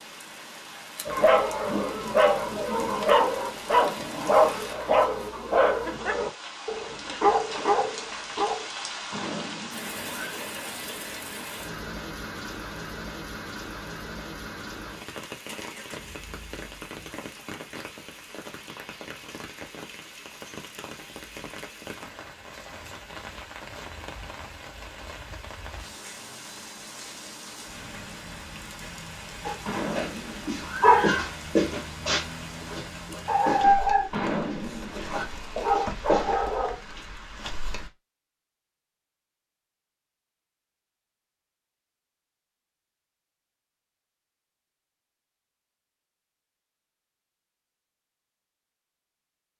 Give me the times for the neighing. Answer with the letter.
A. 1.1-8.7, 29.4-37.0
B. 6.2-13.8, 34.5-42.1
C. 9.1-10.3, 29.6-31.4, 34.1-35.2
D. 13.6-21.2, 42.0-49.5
C.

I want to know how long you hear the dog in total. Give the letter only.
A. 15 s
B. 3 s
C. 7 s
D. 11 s
A.